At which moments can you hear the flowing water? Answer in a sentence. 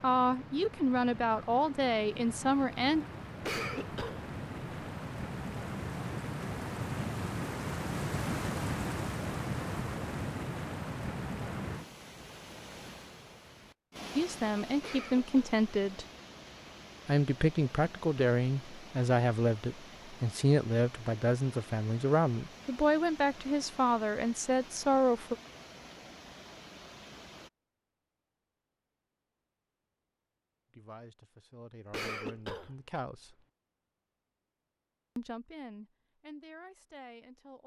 The flowing water can be heard from 0.0 to 27.5 s.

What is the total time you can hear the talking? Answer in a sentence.
You can hear the talking for 18 seconds altogether.